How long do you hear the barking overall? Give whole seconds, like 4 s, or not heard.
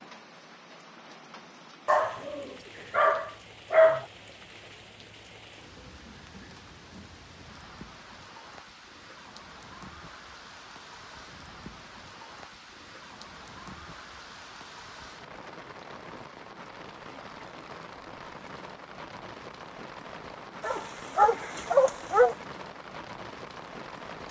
4 s.